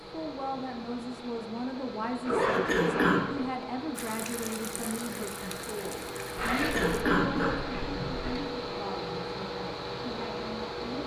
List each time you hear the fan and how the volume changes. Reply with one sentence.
The fan can be heard from 0.0 to 11.0 s, getting louder.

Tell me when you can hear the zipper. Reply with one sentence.
The zipper can be heard from 2.2 to 3.5 s and from 6.3 to 8.4 s.